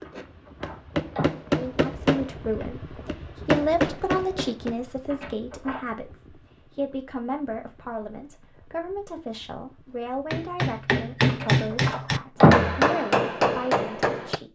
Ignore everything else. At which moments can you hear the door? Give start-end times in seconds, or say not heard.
0.1-1.3, 5.1-5.8, 11.3-12.8.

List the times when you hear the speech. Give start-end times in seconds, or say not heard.
1.5-14.4.